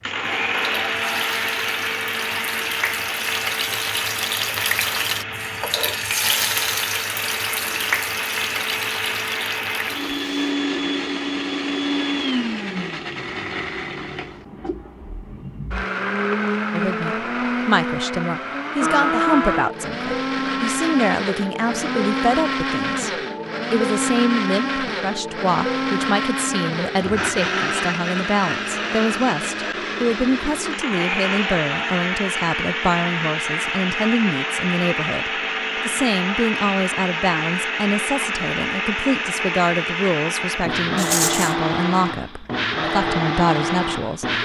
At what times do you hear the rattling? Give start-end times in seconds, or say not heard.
41.0-41.5.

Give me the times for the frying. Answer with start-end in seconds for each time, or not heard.
0.0-10.6.